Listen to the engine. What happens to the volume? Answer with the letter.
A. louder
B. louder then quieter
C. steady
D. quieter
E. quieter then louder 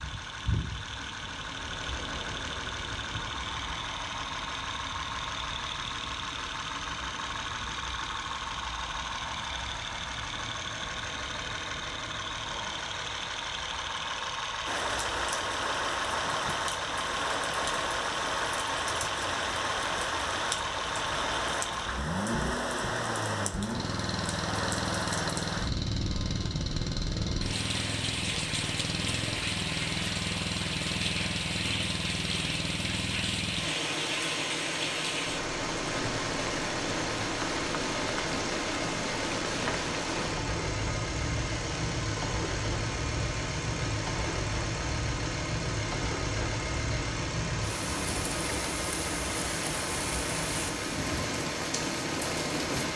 C.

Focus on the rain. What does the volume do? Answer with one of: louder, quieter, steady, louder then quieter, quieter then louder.
steady.